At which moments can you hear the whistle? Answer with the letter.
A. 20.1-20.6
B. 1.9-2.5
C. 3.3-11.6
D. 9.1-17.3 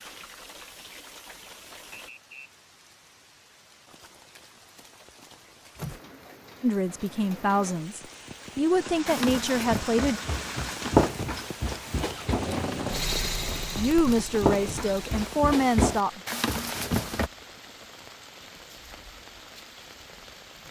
B.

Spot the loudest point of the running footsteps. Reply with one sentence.
The loudest moment of the running footsteps is at 11 seconds.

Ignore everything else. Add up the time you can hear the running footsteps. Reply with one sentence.
The running footsteps can be heard for 8 seconds in total.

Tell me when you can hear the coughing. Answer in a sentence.
You can't hear the coughing here.